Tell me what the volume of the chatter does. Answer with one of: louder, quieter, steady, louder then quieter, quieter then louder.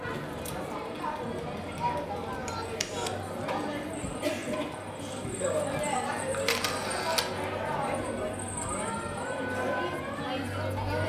steady.